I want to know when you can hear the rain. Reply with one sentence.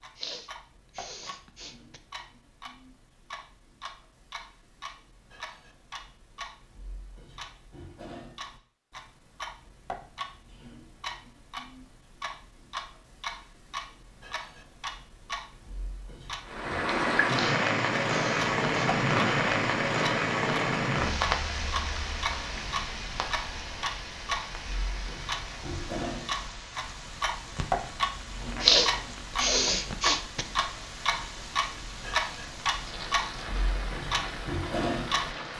You can hear the rain from 16.4 to 35.5 s.